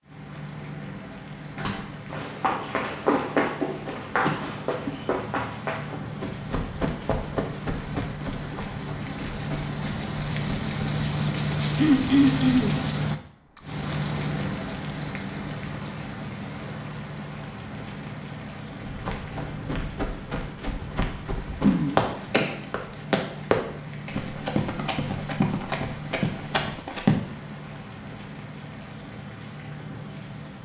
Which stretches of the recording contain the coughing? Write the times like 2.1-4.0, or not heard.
4.2-5.0, 11.8-12.8, 21.6-22.6.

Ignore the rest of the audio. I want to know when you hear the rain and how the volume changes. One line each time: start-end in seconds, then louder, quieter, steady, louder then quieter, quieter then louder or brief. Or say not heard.
0.0-30.6 louder then quieter.